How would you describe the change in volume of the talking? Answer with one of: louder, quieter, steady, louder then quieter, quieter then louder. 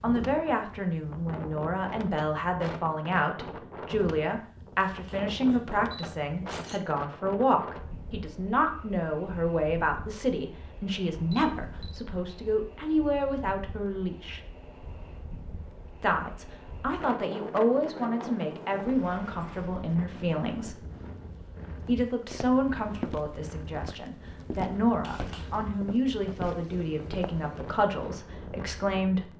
steady.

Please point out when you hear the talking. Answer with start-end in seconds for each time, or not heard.
0.0-14.4, 16.0-20.8, 21.9-29.3.